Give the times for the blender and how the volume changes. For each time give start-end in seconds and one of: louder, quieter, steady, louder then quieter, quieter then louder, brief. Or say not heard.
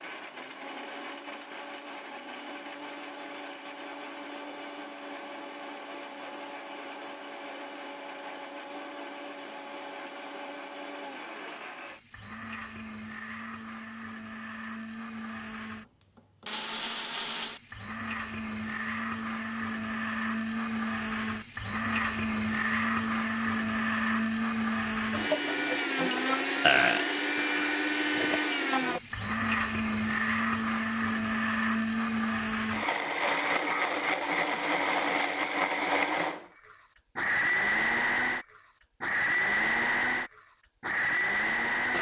0.0-41.9 louder.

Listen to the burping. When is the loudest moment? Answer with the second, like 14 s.
27 s.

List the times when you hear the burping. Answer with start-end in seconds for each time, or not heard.
26.6-28.4.